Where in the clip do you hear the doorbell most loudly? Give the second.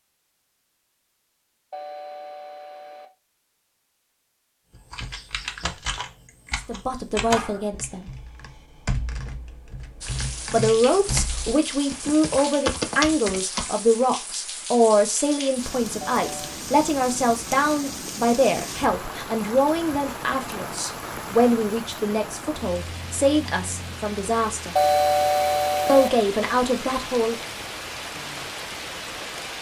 25 s.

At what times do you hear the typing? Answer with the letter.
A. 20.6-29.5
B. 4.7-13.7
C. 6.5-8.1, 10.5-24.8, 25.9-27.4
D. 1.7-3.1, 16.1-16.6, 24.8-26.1
B.